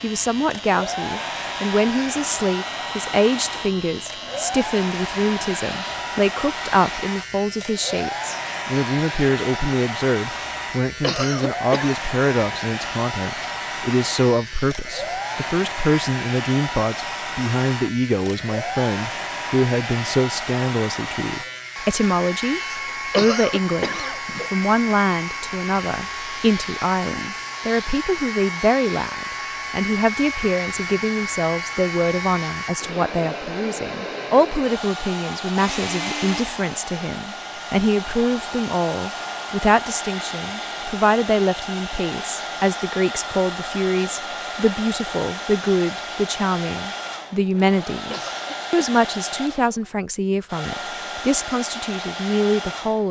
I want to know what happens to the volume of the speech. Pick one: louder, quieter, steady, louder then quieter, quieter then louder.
steady.